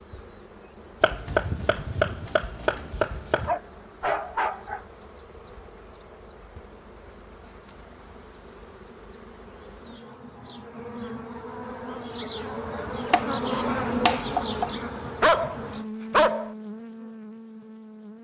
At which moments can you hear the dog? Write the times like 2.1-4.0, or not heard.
3.5-4.8, 15.2-16.5.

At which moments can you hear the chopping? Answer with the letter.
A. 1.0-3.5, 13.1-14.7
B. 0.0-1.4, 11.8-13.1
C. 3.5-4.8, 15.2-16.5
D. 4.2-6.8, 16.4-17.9
A.